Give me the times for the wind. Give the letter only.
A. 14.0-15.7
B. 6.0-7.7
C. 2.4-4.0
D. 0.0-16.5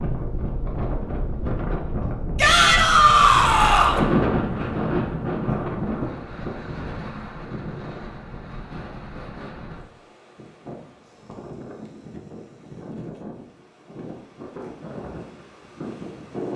D.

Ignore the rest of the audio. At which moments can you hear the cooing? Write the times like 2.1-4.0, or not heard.
not heard.